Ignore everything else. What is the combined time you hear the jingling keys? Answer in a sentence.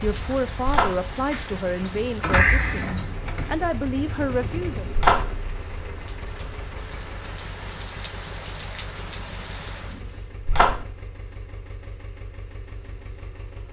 You can hear the jingling keys for 2 seconds altogether.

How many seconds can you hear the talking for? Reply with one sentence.
The talking can be heard for 5 seconds in total.